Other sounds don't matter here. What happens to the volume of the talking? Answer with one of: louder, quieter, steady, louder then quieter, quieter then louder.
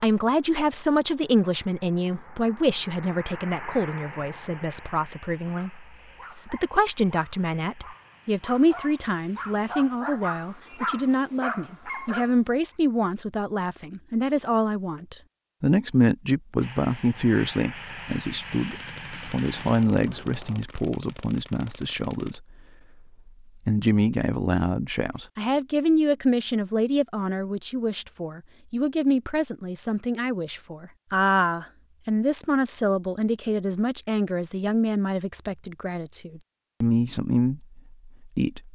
steady.